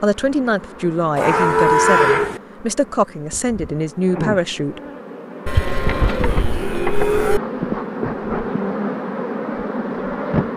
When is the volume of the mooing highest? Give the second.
2 s.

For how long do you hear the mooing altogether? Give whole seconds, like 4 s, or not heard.
3 s.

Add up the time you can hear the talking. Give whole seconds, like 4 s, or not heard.
5 s.